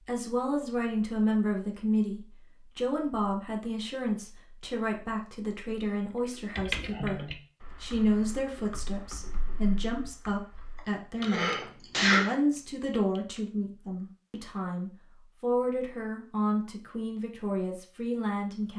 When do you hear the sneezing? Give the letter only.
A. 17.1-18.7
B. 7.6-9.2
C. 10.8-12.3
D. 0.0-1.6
C.